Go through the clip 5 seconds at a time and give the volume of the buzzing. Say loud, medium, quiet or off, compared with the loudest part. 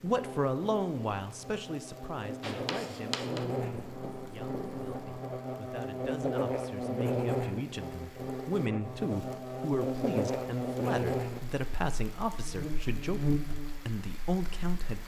medium, loud, loud.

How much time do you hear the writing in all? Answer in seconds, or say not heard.
3 s.